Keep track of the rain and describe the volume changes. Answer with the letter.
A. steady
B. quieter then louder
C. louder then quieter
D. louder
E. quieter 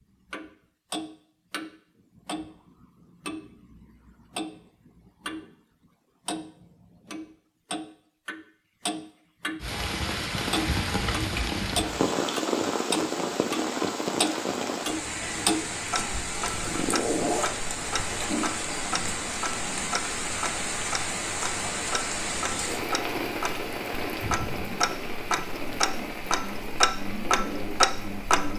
E.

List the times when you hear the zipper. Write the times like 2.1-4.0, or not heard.
16.4-18.2.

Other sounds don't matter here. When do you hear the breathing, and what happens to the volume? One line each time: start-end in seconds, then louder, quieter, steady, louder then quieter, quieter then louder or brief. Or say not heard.
not heard.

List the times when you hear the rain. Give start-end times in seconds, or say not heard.
9.6-28.5.